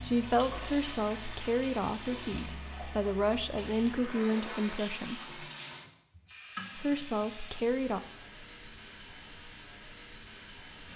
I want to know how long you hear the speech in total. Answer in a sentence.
You can hear the speech for 7 seconds altogether.